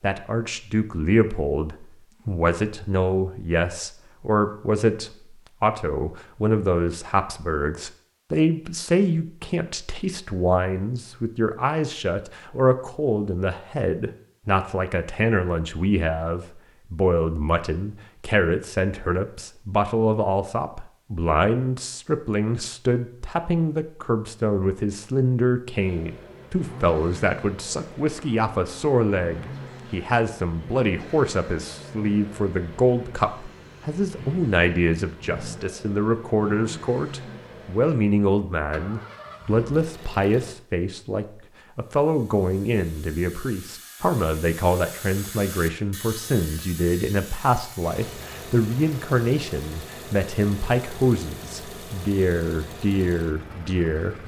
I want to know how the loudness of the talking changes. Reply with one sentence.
The loudness of the talking stays about the same.